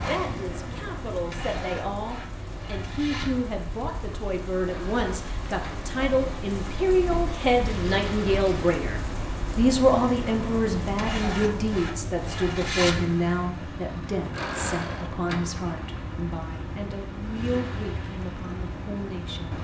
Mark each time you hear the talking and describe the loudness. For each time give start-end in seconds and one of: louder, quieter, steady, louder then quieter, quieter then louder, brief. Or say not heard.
0.0-19.5 louder then quieter.